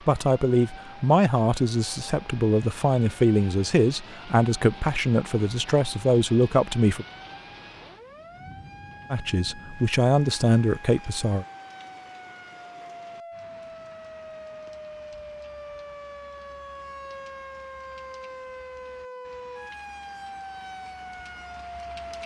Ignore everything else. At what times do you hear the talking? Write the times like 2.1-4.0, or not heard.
0.1-7.0, 9.1-11.4.